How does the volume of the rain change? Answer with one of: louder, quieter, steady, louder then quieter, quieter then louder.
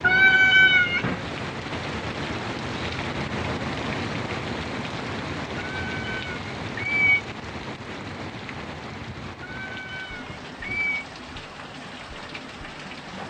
quieter.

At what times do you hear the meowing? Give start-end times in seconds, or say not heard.
0.0-1.2, 5.7-7.2, 9.4-11.1.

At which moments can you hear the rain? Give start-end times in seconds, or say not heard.
0.0-13.2.